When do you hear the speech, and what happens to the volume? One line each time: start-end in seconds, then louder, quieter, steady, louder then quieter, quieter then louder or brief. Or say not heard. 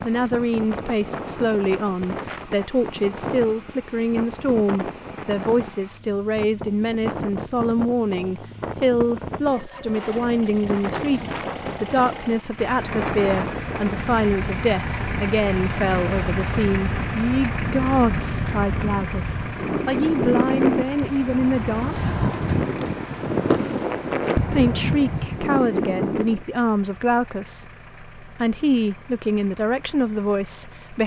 0.0-22.0 steady
24.5-31.0 quieter then louder.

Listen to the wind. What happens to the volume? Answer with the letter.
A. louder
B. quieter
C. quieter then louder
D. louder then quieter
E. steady
A.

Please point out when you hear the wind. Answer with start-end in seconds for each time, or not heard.
0.0-26.4.